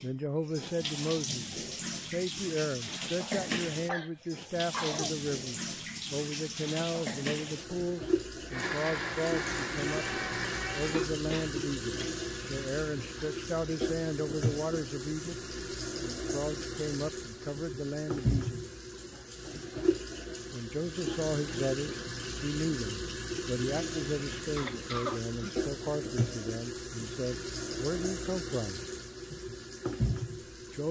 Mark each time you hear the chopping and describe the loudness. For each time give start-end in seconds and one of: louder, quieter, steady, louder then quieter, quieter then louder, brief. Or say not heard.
not heard.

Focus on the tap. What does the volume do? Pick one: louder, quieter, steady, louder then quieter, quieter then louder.
steady.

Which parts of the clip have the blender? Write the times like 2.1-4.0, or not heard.
8.5-11.1.